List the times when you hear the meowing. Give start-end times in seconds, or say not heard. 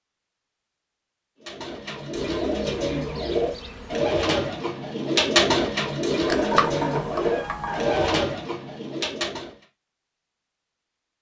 6.2-8.2.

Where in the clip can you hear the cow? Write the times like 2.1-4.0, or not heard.
not heard.